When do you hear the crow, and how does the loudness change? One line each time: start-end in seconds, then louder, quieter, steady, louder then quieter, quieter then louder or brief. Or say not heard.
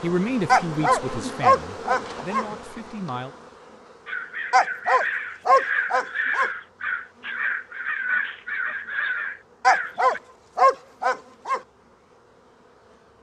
4.0-10.2 steady.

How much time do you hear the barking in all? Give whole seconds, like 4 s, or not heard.
6 s.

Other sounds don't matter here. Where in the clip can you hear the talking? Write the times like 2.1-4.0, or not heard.
0.0-3.3.